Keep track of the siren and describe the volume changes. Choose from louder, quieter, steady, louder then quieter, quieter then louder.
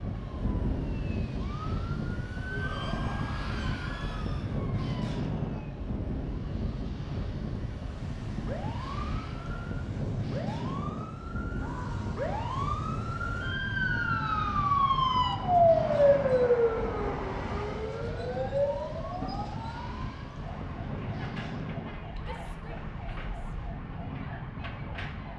louder then quieter.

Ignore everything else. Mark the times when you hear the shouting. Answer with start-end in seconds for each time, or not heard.
2.5-4.5, 11.6-12.5, 22.2-23.6.